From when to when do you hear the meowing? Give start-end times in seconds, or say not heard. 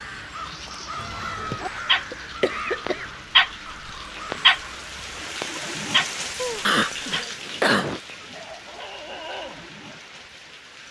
0.9-1.6, 6.3-7.3.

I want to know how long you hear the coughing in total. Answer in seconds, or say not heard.
3 s.